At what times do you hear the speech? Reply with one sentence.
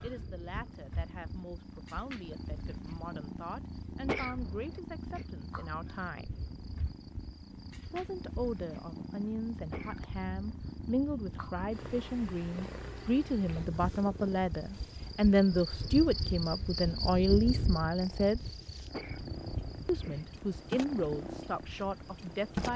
The speech can be heard from 0.0 to 6.3 s, from 7.9 to 18.4 s and from 19.9 to 22.7 s.